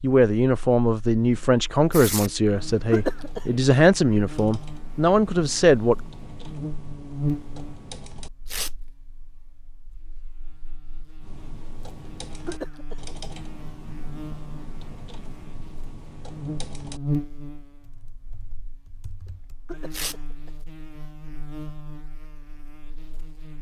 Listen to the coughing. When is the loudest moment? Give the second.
3 s.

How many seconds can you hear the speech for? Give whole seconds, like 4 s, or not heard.
6 s.